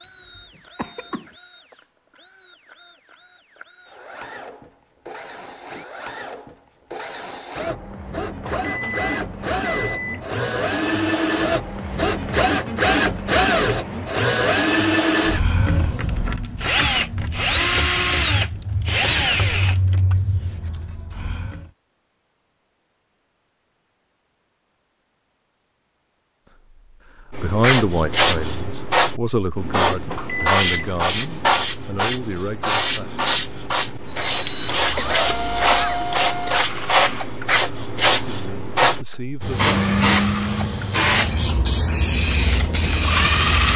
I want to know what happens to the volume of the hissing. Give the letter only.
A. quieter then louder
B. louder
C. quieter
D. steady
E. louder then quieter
D.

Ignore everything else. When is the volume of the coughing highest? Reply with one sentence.
The loudest moment of the coughing is at 35 seconds.